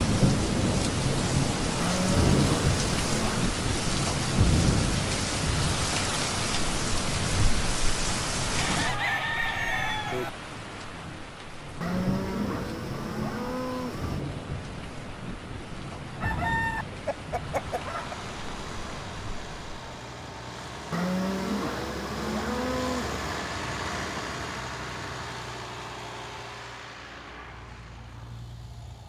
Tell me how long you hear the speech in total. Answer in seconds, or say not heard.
not heard.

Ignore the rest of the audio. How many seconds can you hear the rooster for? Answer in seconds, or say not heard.
4 s.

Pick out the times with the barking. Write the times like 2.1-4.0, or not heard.
not heard.